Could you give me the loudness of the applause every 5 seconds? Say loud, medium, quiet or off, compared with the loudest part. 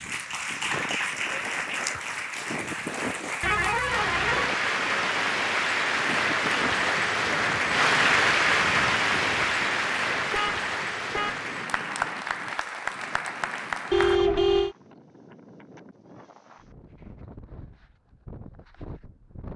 medium, loud, medium, off.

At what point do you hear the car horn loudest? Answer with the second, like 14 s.
14 s.